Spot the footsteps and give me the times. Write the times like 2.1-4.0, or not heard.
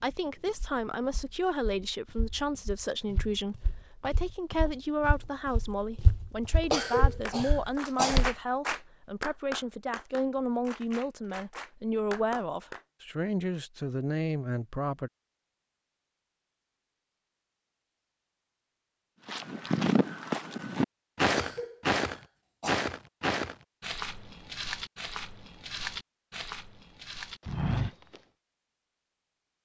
0.0-8.3, 19.2-28.2.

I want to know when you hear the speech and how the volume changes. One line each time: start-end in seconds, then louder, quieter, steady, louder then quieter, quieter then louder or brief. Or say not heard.
0.0-15.1 steady.